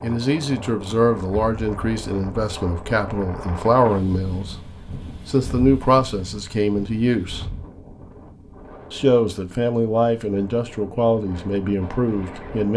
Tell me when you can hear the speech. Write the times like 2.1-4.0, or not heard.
0.0-7.5, 8.9-12.7.